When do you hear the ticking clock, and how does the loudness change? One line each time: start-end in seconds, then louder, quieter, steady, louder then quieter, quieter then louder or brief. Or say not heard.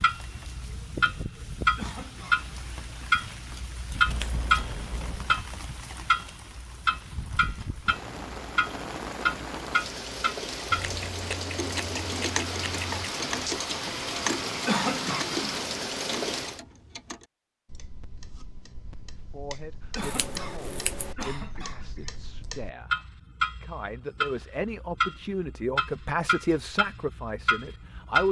0.0-28.2 quieter then louder.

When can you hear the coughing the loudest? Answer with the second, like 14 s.
15 s.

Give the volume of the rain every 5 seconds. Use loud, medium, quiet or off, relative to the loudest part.
medium, medium, loud, loud, off, off.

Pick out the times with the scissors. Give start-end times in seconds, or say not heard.
4.0-5.5, 10.7-13.1, 20.0-21.1.